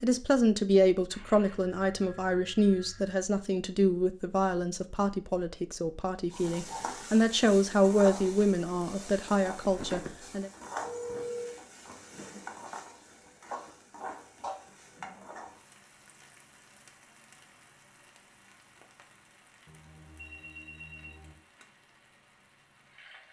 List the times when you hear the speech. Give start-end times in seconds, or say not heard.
0.0-10.5.